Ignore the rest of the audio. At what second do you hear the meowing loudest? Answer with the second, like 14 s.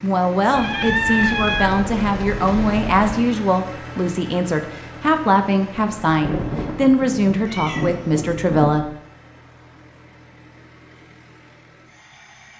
1 s.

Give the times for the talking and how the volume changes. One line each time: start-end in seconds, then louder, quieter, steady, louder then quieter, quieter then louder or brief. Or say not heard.
0.0-8.8 steady.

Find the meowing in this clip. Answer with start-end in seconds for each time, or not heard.
0.5-3.2, 7.5-8.3.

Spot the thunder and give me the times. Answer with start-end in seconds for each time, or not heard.
6.0-8.8.